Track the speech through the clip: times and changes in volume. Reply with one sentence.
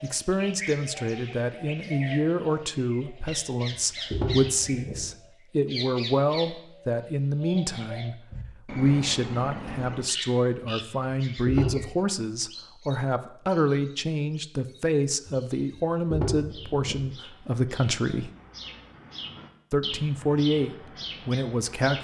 You can hear the speech from 0.0 to 18.3 s, at a steady volume; and briefly from 19.7 to 21.9 s.